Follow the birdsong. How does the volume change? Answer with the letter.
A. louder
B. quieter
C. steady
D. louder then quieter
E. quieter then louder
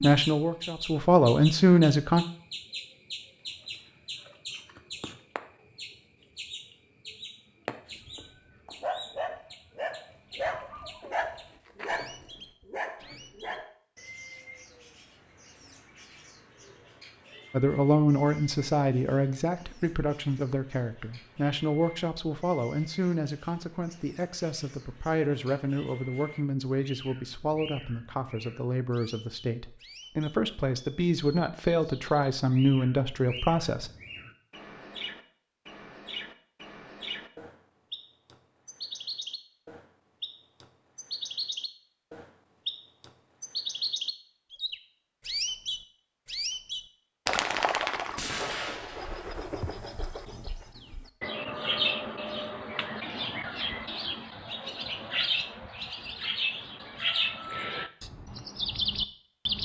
E.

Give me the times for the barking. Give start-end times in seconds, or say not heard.
7.9-13.7.